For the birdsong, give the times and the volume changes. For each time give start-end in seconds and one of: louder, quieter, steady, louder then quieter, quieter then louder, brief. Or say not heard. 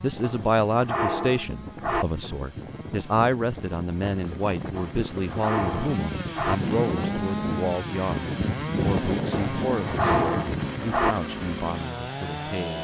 not heard.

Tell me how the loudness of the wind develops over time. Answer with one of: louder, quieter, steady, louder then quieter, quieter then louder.
louder.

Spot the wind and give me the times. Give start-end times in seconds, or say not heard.
0.0-10.8.